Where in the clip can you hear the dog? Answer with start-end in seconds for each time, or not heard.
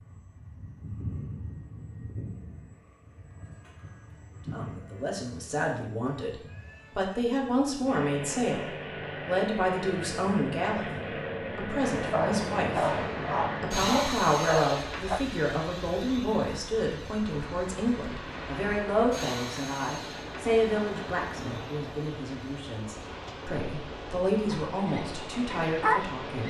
11.9-15.2, 24.5-26.1.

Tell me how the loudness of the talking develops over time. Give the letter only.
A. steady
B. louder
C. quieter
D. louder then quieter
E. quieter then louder
A.